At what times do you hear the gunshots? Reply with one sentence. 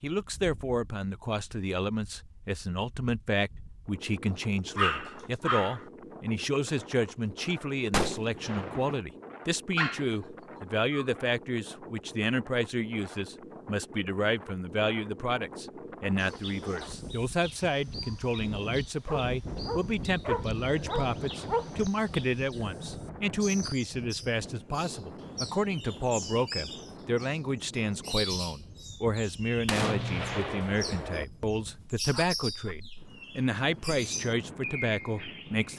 The gunshots can be heard from 7.9 to 9.1 s and from 29.6 to 31.2 s.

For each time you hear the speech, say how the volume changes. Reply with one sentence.
The speech can be heard from 0.0 to 35.7 s, at a steady volume.